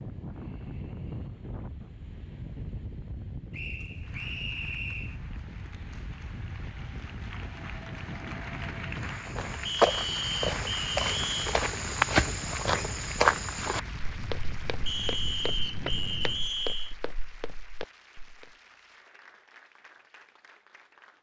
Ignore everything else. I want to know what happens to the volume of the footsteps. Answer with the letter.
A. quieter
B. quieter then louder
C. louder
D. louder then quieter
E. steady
A.